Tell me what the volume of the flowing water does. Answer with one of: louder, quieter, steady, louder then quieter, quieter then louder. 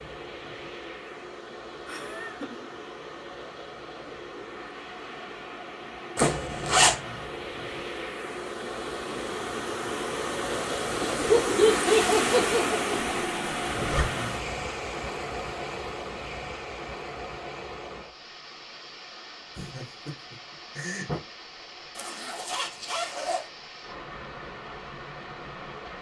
louder then quieter.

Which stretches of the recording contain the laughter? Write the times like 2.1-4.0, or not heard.
1.9-2.6, 11.0-13.2, 19.6-21.2.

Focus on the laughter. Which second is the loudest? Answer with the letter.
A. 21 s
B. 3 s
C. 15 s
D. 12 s
D.